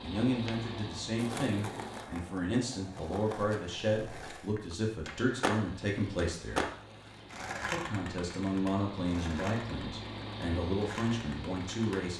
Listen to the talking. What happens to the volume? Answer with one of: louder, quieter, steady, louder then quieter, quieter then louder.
steady.